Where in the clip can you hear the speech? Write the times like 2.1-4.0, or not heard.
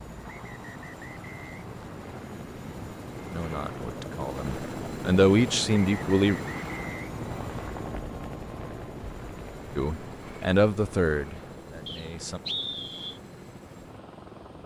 3.3-6.4, 9.8-12.4.